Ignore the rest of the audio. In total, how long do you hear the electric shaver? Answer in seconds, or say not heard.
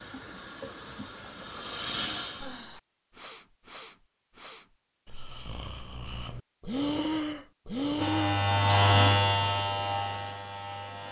3 s.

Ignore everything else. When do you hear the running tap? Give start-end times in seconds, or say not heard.
0.0-2.8.